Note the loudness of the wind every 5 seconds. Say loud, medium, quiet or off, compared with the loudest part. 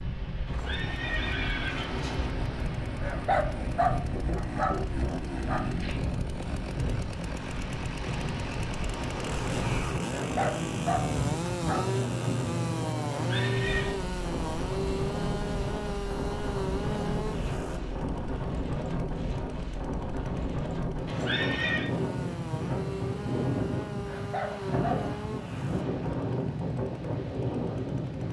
medium, loud, loud, loud, loud, loud.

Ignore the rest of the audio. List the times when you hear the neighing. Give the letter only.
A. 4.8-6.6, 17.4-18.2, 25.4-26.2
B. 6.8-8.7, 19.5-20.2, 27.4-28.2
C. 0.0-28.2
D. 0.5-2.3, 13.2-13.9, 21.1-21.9
D.